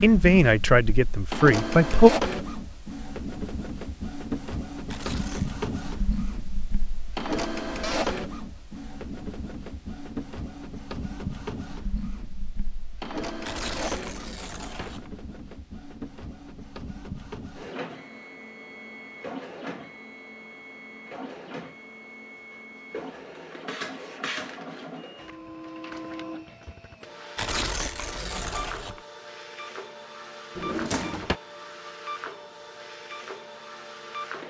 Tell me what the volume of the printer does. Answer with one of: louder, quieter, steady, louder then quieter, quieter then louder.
quieter.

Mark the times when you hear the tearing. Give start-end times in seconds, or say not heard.
4.8-5.5, 13.4-15.1, 27.4-29.0.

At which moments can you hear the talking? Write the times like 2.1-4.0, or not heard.
0.0-2.1.